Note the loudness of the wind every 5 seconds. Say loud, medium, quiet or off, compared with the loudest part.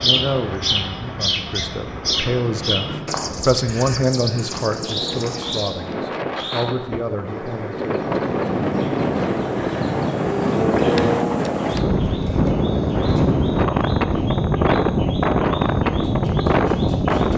quiet, medium, loud, loud.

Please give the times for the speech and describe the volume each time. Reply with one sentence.
You can hear the speech from 0.0 to 8.3 s, getting louder then quieter.